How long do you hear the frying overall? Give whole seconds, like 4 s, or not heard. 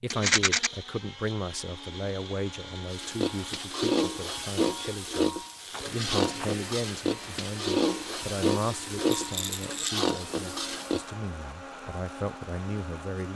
8 s.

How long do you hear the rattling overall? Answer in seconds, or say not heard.
2 s.